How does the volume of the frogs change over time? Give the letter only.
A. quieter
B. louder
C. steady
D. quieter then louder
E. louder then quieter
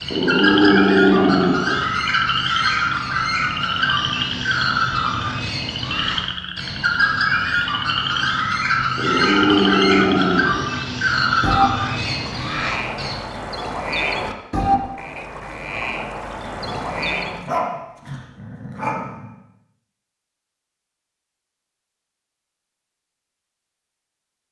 C.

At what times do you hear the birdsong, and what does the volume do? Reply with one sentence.
You can hear the birdsong from 0.0 to 13.2 s, at a steady volume.